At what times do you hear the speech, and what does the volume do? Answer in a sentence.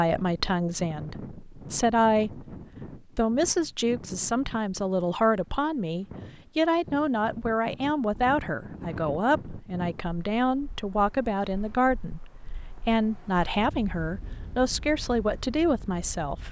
The speech can be heard from 0.0 to 16.4 s, at a steady volume.